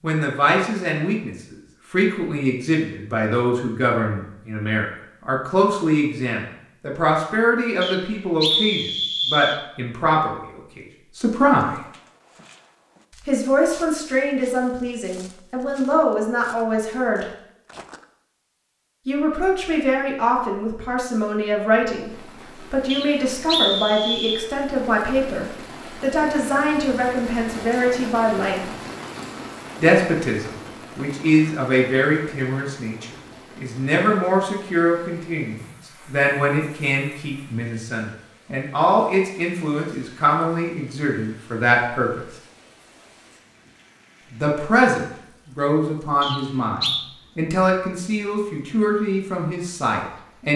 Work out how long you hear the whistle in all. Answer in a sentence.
The whistle can be heard for 4 seconds in total.